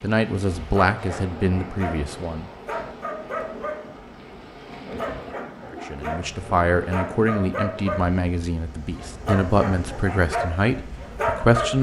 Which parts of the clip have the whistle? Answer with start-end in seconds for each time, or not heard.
not heard.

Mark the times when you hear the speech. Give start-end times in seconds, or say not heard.
0.0-2.5, 5.9-11.7.